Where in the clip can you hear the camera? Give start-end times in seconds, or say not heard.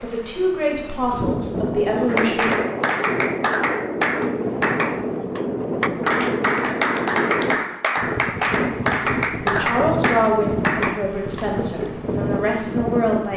not heard.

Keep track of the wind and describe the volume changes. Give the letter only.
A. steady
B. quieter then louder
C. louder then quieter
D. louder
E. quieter
A.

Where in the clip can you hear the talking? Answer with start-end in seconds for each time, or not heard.
0.0-2.5, 9.4-13.3.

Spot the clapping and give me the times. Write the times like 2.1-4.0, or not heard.
2.0-11.4.